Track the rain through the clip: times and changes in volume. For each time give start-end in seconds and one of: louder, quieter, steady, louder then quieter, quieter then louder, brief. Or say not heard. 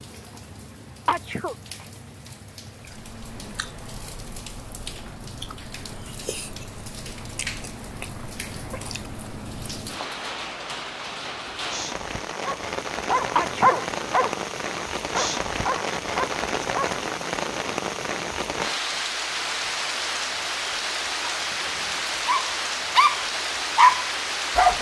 0.0-24.7 louder.